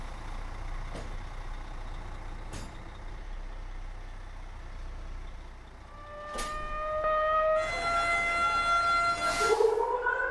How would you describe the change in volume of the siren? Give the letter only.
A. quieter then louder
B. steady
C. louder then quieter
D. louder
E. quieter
D.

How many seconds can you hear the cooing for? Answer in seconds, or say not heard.
not heard.